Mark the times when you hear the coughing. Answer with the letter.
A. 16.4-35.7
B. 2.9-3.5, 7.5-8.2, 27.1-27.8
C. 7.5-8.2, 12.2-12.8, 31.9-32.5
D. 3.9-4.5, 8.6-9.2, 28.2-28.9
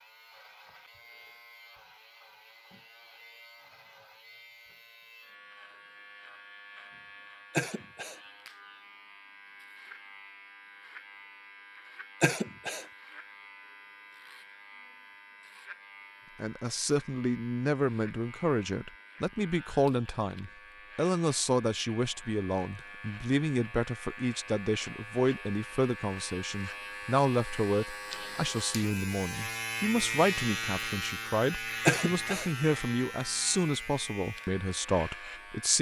C.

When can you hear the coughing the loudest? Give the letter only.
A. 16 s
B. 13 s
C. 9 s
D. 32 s
D.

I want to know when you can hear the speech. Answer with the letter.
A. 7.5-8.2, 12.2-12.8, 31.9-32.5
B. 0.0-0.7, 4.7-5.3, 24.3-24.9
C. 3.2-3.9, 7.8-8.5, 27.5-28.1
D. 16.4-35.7
D.